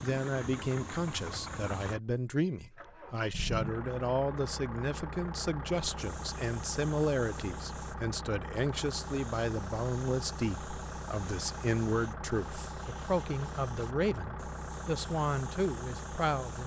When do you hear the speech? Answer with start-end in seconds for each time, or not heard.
0.0-16.6.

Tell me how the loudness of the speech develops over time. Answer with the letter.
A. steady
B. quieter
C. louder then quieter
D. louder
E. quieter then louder
A.